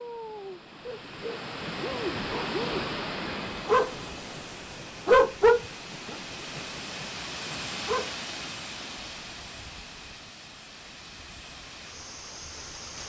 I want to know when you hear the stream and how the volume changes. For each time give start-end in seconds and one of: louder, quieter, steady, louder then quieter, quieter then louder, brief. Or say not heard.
0.0-13.0 quieter.